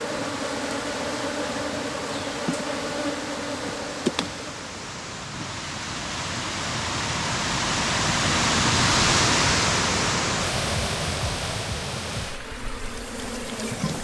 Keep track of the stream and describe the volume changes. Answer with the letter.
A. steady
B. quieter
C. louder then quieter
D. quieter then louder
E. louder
C.